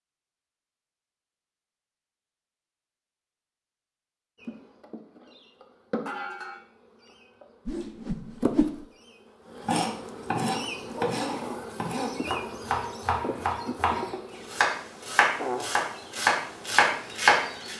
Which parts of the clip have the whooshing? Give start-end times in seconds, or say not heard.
7.7-8.8.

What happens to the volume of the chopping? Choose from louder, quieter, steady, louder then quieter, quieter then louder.
louder.